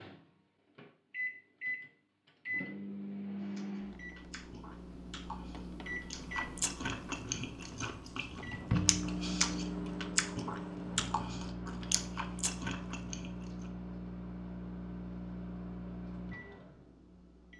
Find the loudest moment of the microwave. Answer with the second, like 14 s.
9 s.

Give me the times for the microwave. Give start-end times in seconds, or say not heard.
0.0-17.5.